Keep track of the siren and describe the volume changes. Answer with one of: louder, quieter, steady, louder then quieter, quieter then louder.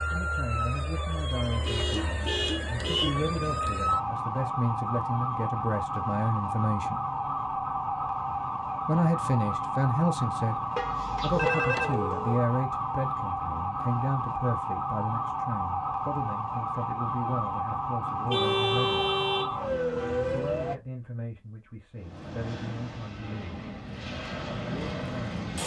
steady.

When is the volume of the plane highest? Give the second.
25 s.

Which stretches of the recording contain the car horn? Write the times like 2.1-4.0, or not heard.
1.6-3.1, 10.8-11.5, 18.2-19.5.